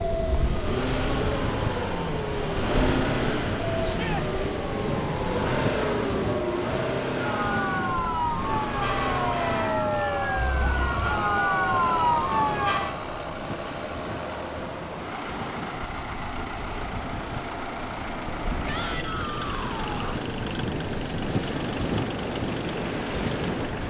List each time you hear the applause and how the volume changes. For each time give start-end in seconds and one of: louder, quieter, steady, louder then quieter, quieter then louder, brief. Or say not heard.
not heard.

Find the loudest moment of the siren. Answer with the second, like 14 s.
12 s.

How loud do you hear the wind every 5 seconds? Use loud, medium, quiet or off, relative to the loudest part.
loud, loud, medium, medium, loud.